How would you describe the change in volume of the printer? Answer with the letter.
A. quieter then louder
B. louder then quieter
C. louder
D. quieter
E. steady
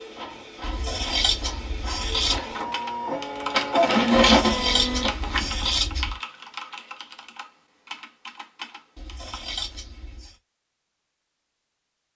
C.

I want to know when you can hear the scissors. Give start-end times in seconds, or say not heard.
0.6-2.4, 4.3-6.2, 8.9-10.3.